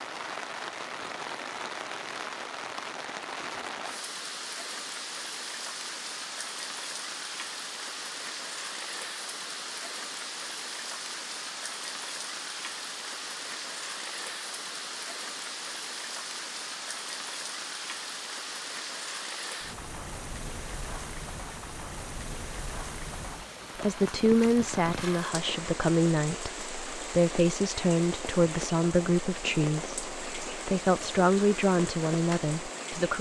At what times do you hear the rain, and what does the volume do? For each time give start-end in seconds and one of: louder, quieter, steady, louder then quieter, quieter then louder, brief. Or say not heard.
0.0-33.1 steady.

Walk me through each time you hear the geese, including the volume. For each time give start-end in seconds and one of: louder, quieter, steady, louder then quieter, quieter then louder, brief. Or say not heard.
not heard.